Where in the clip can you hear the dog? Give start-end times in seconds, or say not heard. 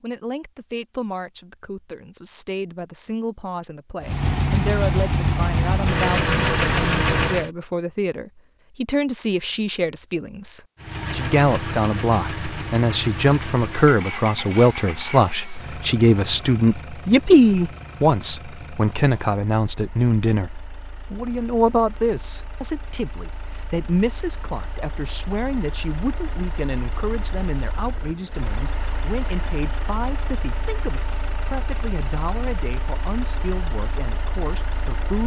not heard.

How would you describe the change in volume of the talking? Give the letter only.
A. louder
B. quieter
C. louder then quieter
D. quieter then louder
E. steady
C.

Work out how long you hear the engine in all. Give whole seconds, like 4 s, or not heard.
28 s.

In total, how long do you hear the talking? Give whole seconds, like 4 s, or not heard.
35 s.